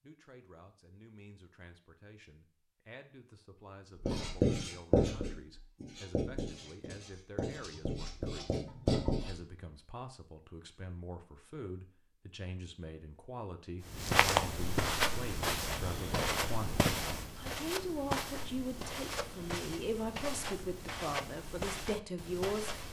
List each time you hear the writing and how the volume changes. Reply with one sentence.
You can hear the writing from 4.0 to 9.3 s, getting quieter then louder.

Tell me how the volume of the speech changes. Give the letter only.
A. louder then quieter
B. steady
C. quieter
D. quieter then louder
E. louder
E.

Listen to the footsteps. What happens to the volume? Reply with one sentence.
The volume of the footsteps goes down.